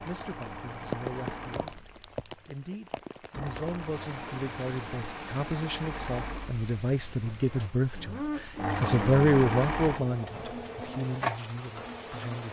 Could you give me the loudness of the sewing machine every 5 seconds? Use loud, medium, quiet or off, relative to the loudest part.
medium, loud, loud.